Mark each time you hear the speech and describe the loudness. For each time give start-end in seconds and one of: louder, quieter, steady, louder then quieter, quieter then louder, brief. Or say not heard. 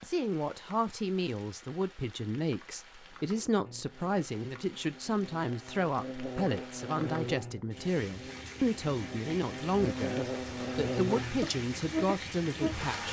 0.1-13.0 steady.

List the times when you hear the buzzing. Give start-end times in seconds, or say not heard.
3.6-13.0.